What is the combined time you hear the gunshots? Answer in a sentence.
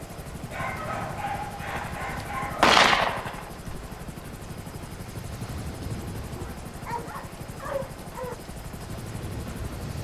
The gunshots can be heard for 2 seconds in total.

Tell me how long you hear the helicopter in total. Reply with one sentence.
You can hear the helicopter for 10 seconds altogether.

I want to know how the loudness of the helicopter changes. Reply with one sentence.
The loudness of the helicopter stays about the same.